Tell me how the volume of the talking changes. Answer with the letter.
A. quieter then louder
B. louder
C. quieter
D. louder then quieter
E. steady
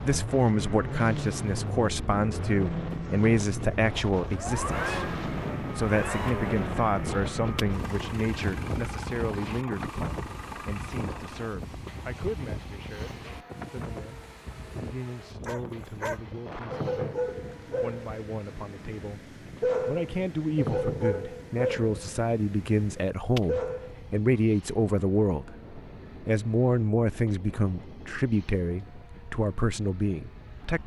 A.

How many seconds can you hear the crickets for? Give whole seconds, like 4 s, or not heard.
not heard.